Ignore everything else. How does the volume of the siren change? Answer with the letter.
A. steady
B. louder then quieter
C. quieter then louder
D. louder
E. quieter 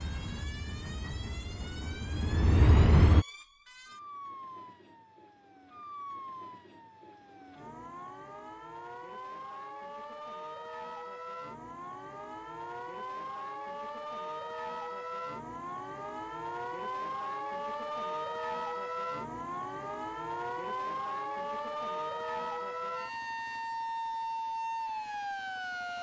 D.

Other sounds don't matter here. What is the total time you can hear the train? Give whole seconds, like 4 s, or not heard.
3 s.